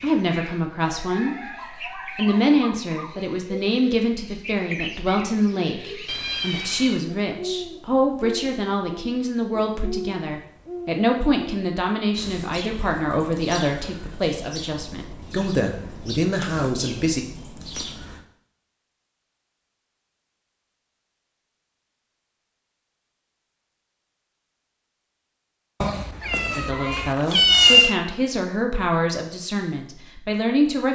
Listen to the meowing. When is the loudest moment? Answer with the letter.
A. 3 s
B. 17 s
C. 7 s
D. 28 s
D.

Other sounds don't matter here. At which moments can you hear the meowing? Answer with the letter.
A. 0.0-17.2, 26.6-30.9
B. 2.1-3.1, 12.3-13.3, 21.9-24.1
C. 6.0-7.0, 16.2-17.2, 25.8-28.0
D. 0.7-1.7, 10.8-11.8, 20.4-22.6
C.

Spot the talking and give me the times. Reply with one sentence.
You can hear the talking from 0.0 to 17.2 s and from 26.6 to 30.9 s.